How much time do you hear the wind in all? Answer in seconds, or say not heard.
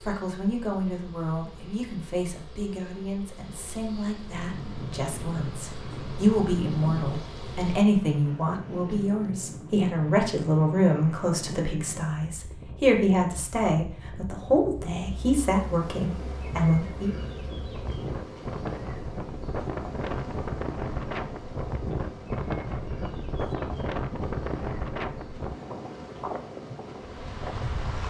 24 s.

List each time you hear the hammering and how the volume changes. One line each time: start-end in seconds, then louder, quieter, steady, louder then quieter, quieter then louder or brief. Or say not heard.
not heard.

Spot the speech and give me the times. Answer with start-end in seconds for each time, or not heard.
0.0-17.1.